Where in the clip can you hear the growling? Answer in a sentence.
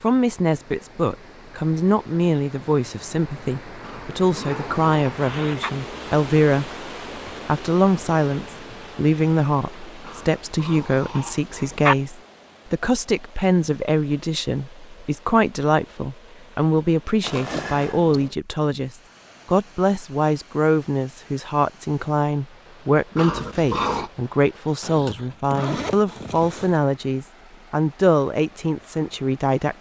The growling can be heard from 3.8 to 5.7 s, from 10.1 to 11.9 s and from 23.1 to 24.1 s.